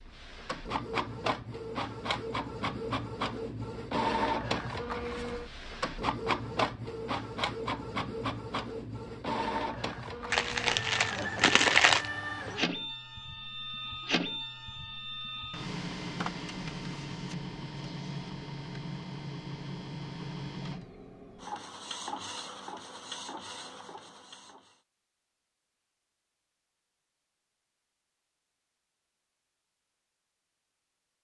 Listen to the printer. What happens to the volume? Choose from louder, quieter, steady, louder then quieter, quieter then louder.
quieter.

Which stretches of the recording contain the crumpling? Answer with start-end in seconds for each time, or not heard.
10.3-12.1.